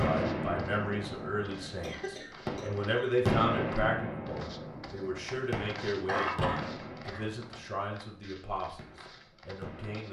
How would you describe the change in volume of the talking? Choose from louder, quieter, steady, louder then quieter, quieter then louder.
louder then quieter.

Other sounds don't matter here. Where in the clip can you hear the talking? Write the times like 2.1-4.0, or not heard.
0.0-10.0.